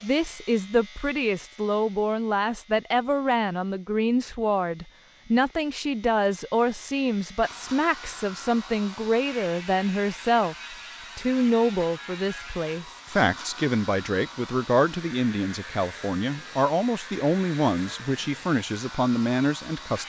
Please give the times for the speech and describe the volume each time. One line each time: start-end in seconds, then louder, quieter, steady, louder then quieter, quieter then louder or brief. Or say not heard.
0.0-20.0 steady.